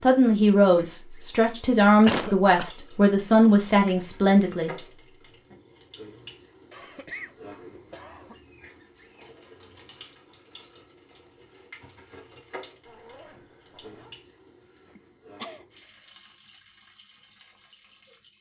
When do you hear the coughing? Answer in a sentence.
You can hear the coughing from 2.0 to 2.7 s, from 6.7 to 8.3 s and from 14.9 to 15.7 s.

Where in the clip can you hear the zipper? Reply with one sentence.
The zipper can be heard from 12.8 to 14.2 s.